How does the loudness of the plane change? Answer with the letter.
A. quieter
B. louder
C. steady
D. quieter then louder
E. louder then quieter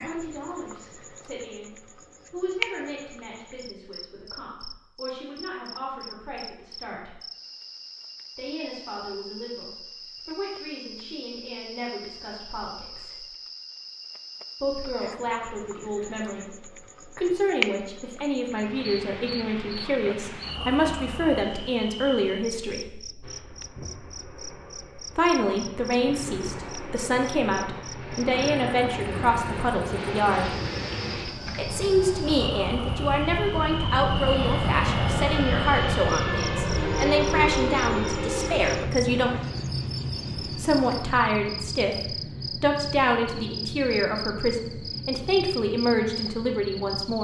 E.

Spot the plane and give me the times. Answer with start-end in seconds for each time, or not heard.
23.2-47.1.